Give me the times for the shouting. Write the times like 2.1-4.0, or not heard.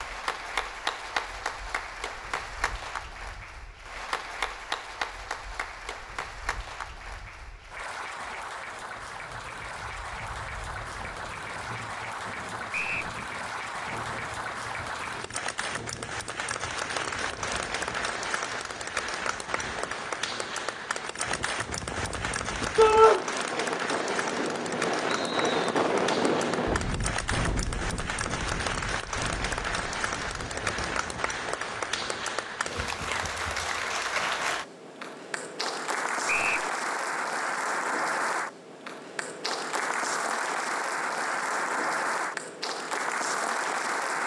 22.8-23.2.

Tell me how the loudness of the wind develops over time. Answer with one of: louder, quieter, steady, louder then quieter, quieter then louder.
louder.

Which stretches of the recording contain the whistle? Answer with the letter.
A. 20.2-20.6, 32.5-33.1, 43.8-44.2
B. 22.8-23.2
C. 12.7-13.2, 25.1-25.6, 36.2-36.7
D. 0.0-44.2
C.